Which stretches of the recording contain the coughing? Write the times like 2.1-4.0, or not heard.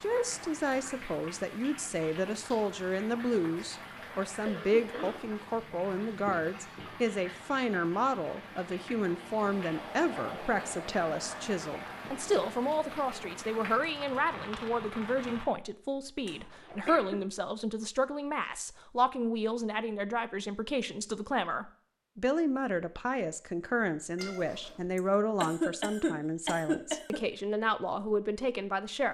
3.8-5.2, 16.2-17.2, 24.9-27.2.